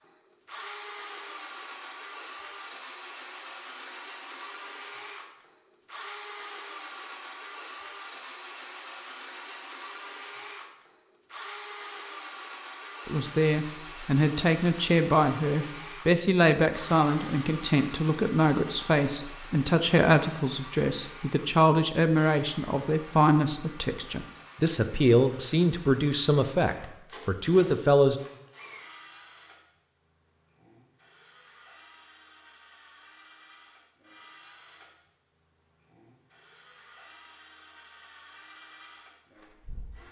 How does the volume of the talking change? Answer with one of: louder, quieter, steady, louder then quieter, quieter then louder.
steady.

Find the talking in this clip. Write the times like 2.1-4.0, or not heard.
13.1-28.1.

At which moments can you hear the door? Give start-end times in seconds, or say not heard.
not heard.